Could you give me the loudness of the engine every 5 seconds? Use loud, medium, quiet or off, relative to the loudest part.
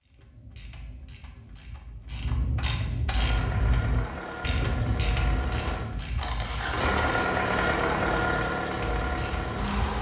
medium, loud.